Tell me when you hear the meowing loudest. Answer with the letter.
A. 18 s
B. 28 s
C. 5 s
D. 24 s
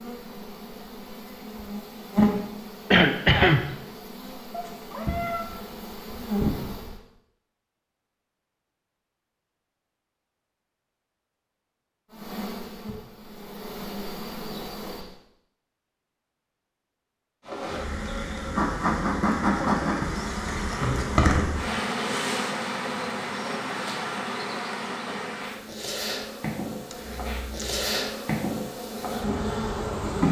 C.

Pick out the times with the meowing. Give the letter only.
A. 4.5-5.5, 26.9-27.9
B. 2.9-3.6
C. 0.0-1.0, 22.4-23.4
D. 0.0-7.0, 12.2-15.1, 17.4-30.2
A.